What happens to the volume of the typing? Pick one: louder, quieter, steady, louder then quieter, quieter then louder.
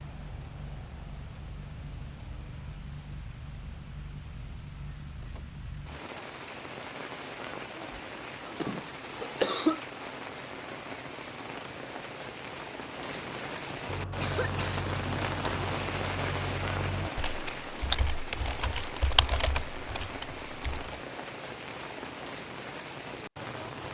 louder then quieter.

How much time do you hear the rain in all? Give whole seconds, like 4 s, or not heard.
24 s.